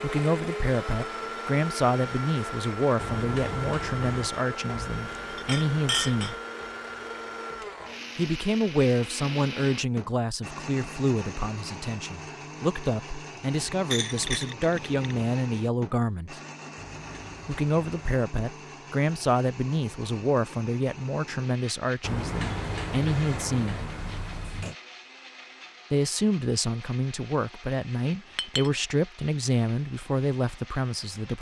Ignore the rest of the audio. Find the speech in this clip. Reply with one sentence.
You can hear the speech from 0.0 to 6.3 s, from 8.2 to 16.4 s, from 17.4 to 23.8 s and from 25.9 to 31.3 s.